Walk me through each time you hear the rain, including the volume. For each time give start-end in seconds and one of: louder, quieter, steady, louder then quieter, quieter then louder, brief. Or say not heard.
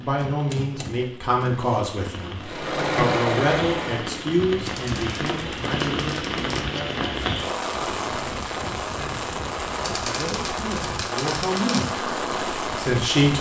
0.0-13.3 louder.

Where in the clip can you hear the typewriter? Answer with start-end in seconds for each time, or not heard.
0.1-1.7, 4.7-6.7, 9.8-11.8.